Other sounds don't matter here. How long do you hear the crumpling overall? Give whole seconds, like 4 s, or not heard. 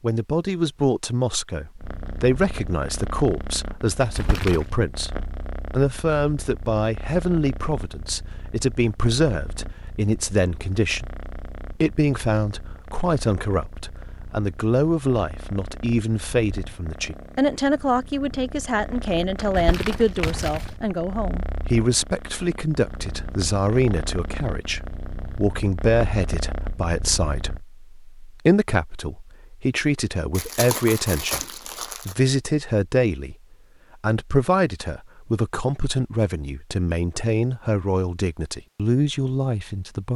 4 s.